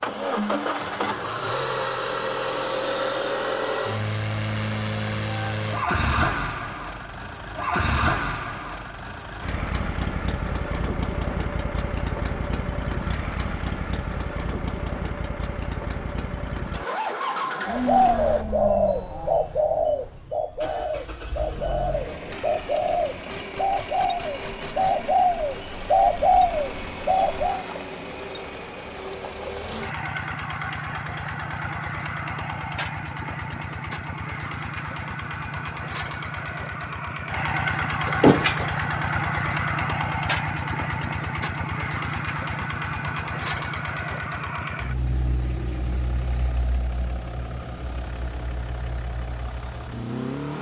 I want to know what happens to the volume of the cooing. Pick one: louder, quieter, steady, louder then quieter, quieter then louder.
quieter then louder.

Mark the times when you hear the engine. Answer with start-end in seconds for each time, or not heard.
0.0-50.5.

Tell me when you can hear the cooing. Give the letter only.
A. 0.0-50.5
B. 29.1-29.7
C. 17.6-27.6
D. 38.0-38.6
C.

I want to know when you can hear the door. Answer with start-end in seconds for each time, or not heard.
38.0-38.6.